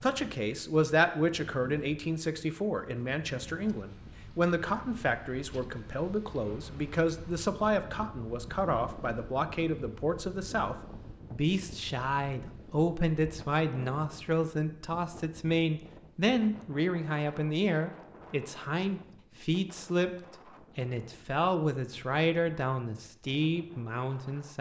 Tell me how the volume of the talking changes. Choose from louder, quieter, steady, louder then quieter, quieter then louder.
steady.